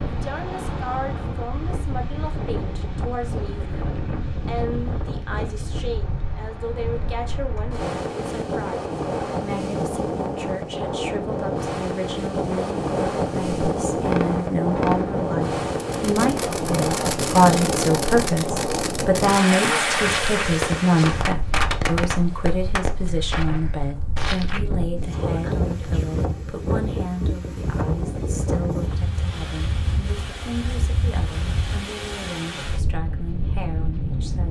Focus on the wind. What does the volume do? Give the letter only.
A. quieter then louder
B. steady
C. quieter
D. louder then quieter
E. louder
D.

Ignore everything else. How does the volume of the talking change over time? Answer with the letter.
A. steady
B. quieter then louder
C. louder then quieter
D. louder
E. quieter
C.